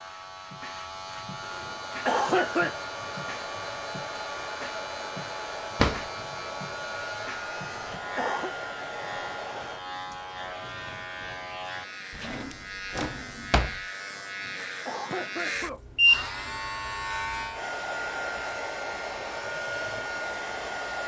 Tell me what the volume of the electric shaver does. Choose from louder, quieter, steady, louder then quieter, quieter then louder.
louder then quieter.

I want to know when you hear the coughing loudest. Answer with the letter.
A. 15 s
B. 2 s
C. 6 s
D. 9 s
B.